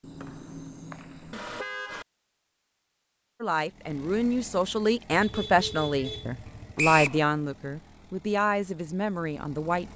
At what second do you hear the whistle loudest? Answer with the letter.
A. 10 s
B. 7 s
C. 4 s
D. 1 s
B.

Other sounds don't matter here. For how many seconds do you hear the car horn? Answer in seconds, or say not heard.
4 s.